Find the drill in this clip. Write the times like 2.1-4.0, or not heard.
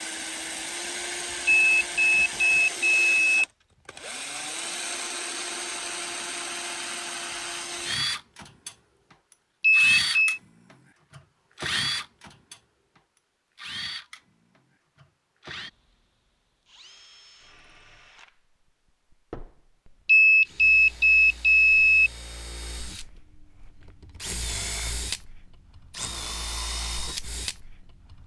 0.0-8.8, 9.7-12.6, 13.6-28.2.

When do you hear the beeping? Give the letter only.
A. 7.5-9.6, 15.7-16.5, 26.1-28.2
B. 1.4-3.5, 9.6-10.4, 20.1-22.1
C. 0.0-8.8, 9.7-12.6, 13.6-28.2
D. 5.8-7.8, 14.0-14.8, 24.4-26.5
B.